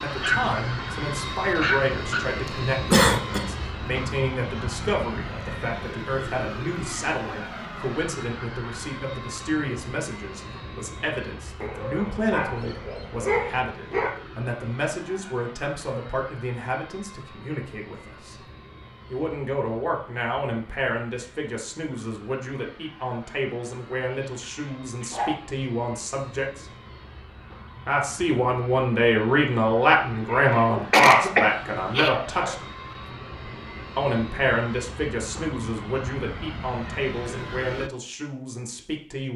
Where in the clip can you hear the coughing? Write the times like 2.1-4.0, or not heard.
2.9-3.4, 30.4-32.1.